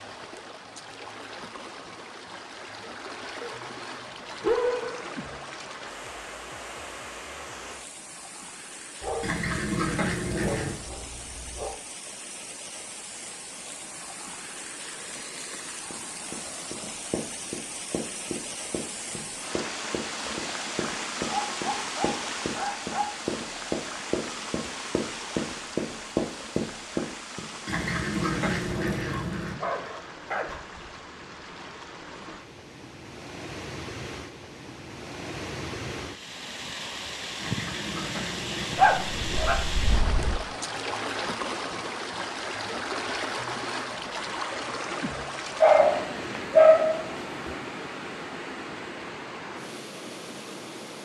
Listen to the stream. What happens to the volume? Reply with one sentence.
The volume of the stream goes up.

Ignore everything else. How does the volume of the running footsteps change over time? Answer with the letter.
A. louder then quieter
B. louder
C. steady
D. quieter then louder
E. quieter
B.